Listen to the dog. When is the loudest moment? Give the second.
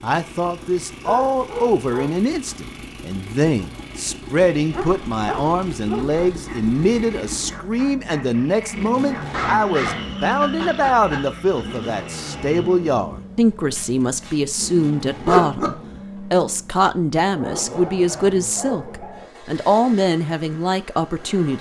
15 s.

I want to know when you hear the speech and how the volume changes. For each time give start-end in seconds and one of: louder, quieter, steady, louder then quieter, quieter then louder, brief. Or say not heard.
0.0-21.5 steady.